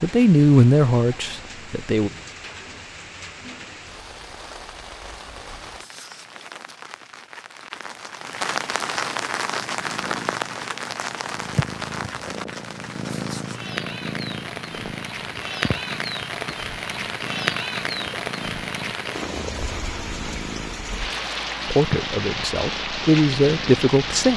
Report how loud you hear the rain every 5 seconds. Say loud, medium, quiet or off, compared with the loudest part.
medium, loud, loud, loud, loud.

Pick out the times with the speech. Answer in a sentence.
The speech can be heard from 0.0 to 2.1 s and from 21.7 to 24.3 s.